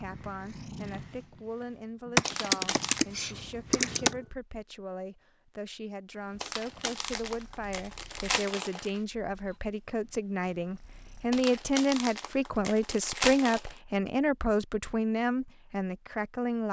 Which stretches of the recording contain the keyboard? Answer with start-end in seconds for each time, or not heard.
2.1-4.2.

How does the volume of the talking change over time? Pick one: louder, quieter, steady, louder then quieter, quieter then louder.
louder.